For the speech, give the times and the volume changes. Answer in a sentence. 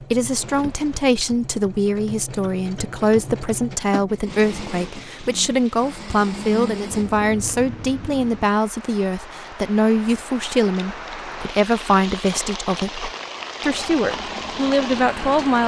The speech can be heard from 0.0 to 15.6 s, at a steady volume.